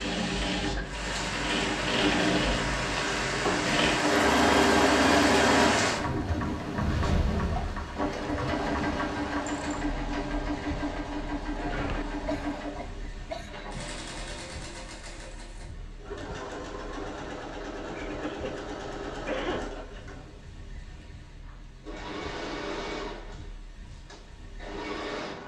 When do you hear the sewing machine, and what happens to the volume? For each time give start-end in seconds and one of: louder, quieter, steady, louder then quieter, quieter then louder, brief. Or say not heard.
0.0-25.4 quieter.